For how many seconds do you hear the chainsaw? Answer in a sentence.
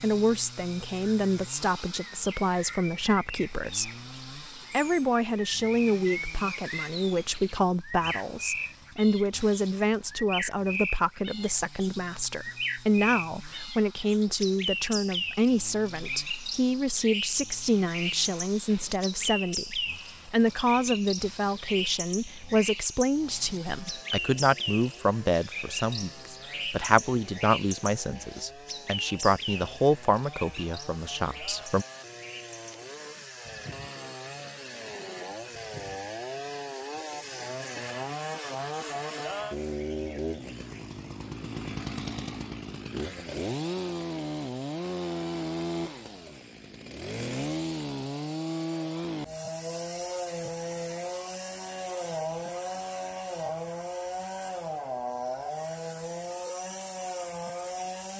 The chainsaw can be heard for 58 seconds in total.